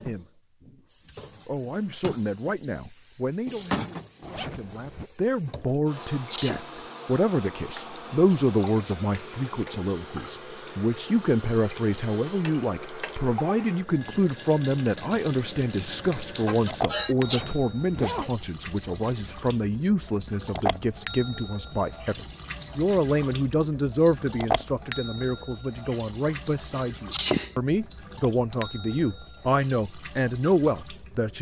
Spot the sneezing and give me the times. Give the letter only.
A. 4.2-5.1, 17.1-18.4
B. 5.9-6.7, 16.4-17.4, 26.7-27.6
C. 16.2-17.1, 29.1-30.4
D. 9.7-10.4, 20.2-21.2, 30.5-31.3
B.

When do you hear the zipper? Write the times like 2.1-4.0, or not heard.
4.2-5.1, 17.1-18.4.